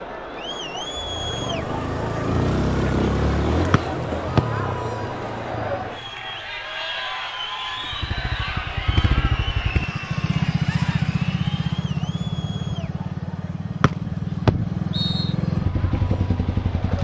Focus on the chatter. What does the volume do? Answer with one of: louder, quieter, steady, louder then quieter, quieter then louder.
quieter.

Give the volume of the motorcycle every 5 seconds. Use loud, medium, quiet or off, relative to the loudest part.
loud, medium, loud, loud.